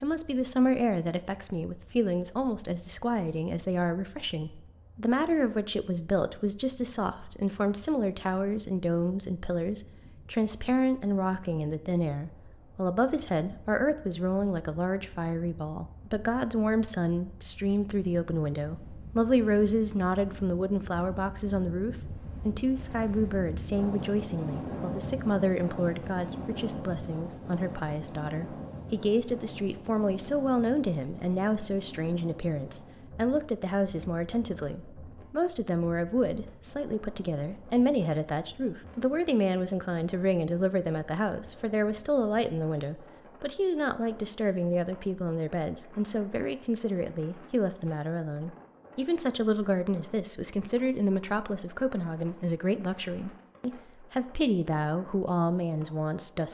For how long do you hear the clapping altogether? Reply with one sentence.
The clapping can't be heard in this clip.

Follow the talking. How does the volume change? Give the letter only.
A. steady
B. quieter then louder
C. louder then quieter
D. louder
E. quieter
A.